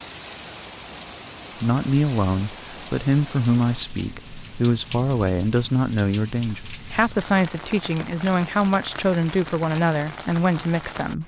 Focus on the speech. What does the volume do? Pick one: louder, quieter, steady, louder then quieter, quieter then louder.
steady.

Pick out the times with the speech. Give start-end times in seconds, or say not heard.
1.6-11.2.